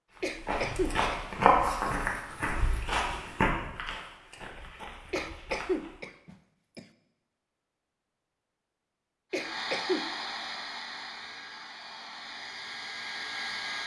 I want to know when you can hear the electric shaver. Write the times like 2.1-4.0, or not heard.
not heard.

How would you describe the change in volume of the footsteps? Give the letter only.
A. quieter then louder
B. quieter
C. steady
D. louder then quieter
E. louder
B.